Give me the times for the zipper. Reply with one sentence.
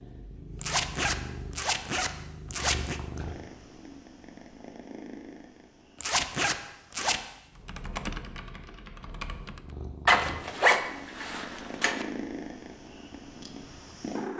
You can hear the zipper from 0.6 to 3.0 s, from 6.0 to 7.2 s and from 10.1 to 12.1 s.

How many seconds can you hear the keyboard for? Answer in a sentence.
The keyboard can be heard for 2 seconds in total.